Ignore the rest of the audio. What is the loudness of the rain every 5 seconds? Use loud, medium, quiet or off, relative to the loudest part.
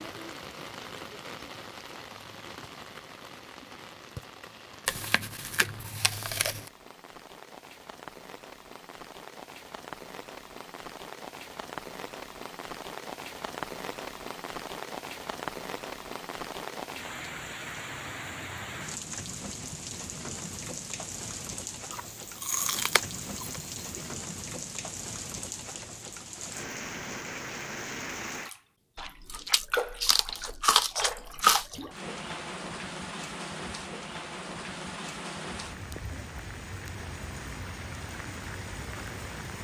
medium, medium, loud, loud, loud, loud, loud, loud.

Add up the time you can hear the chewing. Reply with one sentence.
The chewing can be heard for 7 seconds in total.